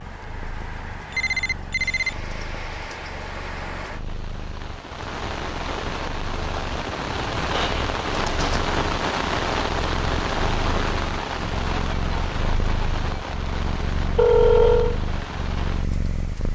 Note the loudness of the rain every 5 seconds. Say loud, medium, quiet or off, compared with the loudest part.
medium, loud, loud, medium.